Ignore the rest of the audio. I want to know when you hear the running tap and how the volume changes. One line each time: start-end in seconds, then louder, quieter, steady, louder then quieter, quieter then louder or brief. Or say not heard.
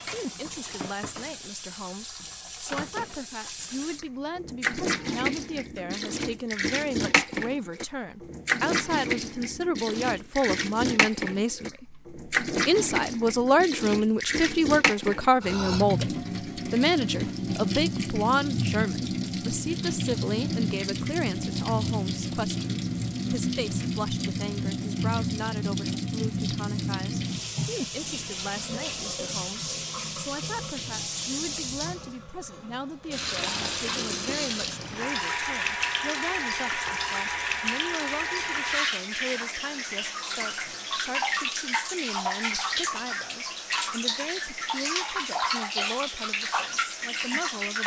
0.0-47.8 steady.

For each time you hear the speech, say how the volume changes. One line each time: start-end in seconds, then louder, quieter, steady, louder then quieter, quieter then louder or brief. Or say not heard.
0.0-47.8 louder then quieter.